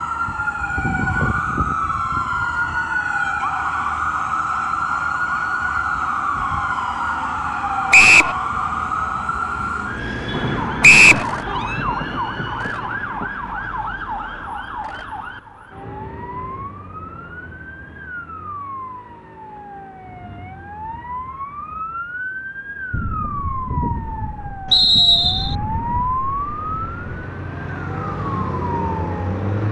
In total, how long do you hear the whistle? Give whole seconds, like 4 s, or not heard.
2 s.